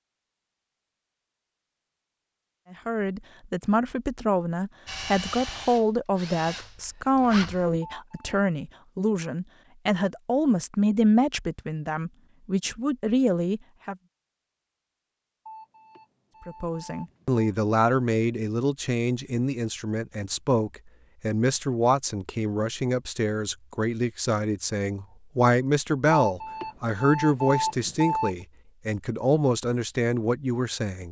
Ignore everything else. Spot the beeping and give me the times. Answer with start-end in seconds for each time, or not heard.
7.9-8.4, 15.4-17.4, 26.2-28.4.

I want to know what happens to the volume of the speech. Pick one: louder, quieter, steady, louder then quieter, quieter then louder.
steady.